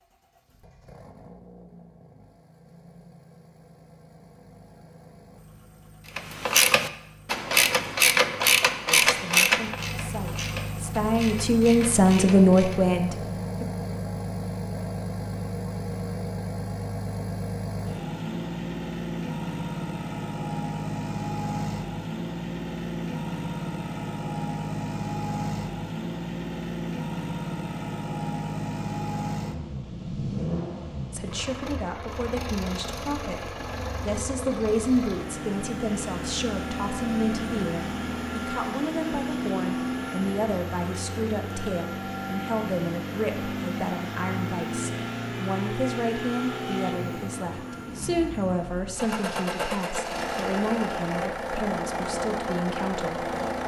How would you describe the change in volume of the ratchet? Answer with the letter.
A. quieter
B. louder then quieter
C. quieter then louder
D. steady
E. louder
A.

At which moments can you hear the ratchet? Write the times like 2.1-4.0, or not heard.
6.2-12.8.